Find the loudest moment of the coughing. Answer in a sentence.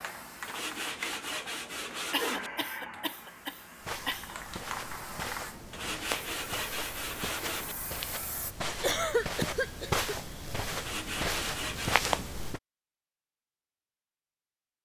The loudest moment of the coughing is at 9 seconds.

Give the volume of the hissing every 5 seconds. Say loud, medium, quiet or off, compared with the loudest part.
loud, loud, off.